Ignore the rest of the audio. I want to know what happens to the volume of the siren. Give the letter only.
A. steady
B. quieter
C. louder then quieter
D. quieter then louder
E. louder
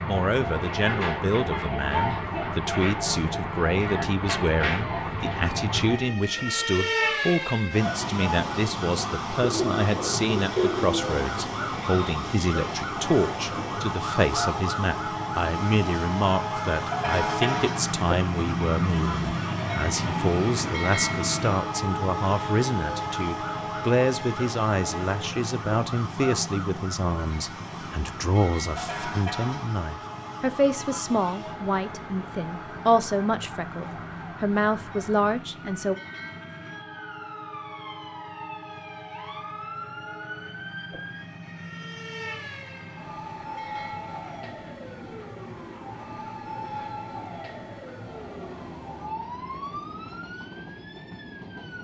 B.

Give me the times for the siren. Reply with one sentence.
You can hear the siren from 0.0 to 51.7 s.